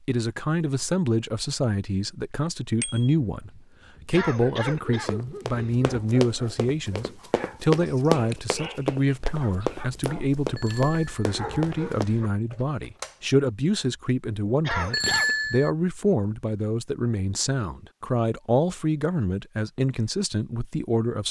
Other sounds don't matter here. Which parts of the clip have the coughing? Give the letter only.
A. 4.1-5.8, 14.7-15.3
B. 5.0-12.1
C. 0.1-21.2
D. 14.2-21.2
A.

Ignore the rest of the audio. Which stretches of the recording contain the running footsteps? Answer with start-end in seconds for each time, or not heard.
5.0-12.1.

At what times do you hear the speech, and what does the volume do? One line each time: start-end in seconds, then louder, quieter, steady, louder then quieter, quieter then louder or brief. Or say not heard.
0.1-21.2 steady.